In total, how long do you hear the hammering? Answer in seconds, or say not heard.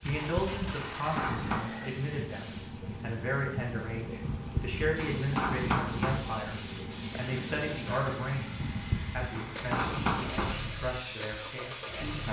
6 s.